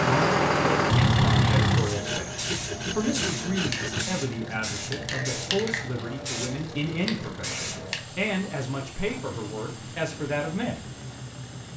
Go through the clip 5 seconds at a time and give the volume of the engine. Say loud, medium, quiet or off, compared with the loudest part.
loud, quiet, quiet.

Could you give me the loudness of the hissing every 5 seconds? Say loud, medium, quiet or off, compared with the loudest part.
loud, loud, quiet.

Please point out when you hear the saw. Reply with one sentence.
The saw can be heard from 1.8 to 4.0 s.